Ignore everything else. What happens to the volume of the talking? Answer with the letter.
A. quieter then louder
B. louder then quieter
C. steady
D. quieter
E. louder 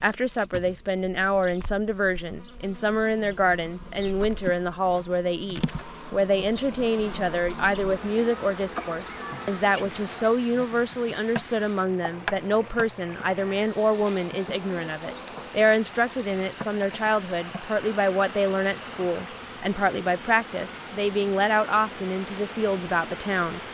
C.